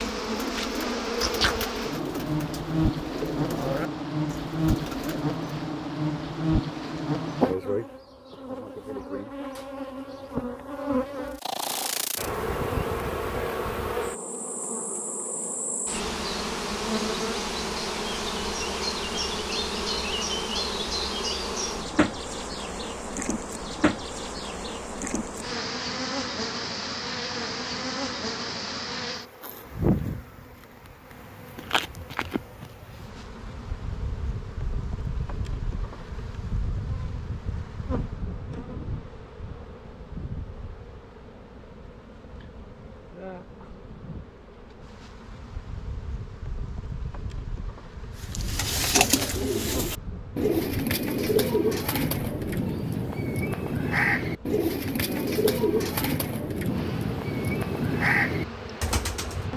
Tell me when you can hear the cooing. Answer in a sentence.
You can hear the cooing from 0.0 to 5.3 s and from 48.2 to 59.5 s.